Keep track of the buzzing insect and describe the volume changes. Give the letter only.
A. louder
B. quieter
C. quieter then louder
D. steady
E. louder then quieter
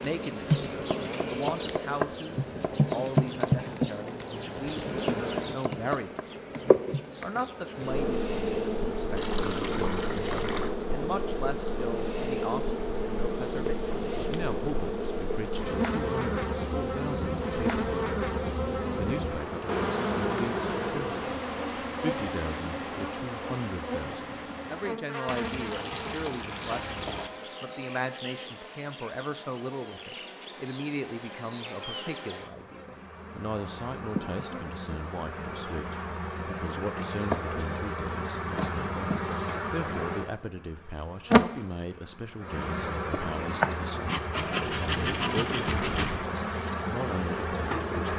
C.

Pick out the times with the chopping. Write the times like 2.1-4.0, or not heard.
0.0-6.2.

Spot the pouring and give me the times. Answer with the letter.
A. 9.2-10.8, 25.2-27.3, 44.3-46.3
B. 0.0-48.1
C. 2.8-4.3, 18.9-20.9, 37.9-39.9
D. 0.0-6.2
A.